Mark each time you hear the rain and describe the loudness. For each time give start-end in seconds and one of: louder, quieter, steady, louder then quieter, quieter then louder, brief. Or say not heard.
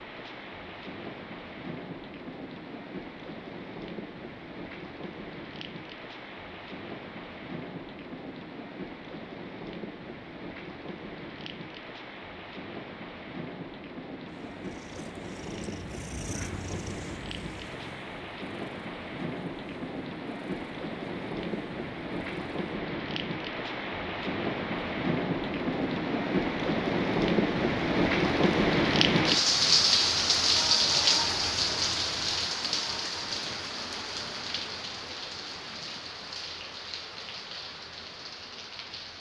0.0-39.1 louder then quieter.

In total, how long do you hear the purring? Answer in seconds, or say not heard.
8 s.